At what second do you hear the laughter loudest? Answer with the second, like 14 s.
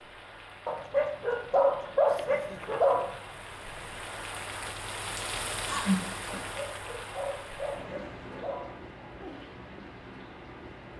6 s.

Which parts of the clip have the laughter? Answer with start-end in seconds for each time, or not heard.
2.0-3.5, 5.7-6.4.